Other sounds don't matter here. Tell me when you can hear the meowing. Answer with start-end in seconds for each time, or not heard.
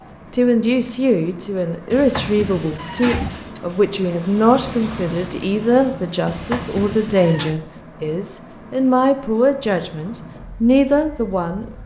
1.9-3.6, 6.2-7.5.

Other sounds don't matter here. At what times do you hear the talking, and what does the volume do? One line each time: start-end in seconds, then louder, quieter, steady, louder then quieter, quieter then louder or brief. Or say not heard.
0.3-11.7 steady.